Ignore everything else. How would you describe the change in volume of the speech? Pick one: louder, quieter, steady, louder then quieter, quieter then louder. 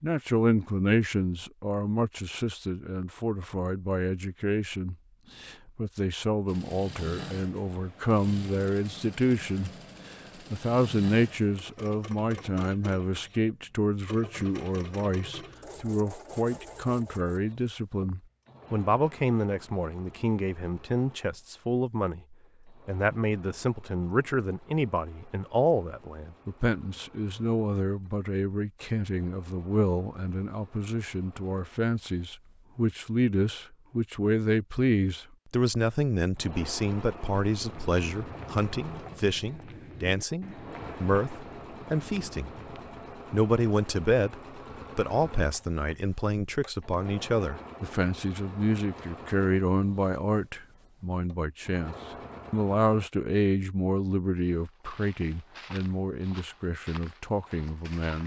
steady.